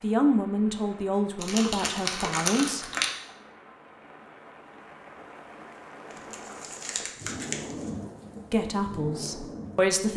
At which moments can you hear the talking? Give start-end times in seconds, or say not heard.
0.0-2.9, 8.5-10.1.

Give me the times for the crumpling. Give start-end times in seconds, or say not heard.
1.4-3.1, 6.1-7.9.